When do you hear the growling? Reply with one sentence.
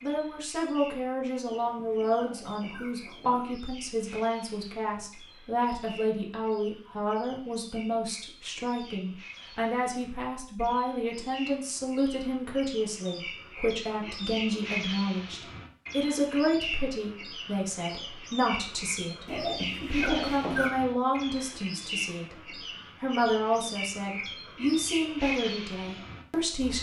The growling can be heard from 1.4 to 3.5 s and from 19.2 to 20.7 s.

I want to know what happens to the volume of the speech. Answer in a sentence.
The loudness of the speech stays about the same.